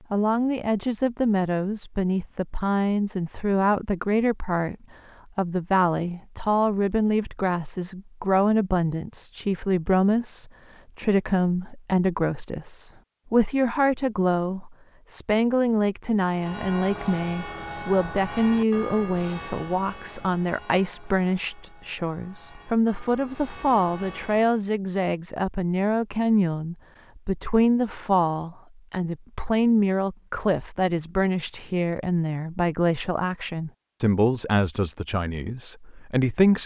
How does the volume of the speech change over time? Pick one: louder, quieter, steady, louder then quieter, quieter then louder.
steady.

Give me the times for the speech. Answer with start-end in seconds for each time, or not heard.
0.1-36.6.